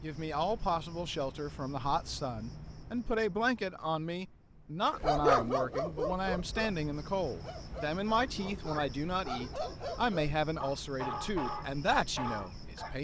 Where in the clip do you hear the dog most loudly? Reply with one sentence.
The volume of the dog peaks at 5 seconds.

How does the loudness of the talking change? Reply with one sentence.
The loudness of the talking stays about the same.